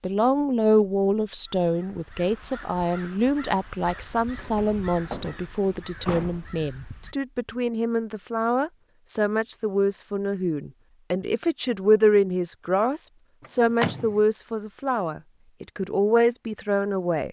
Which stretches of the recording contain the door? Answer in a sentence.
The door can be heard from 3.9 to 6.5 s and from 13.4 to 14.2 s.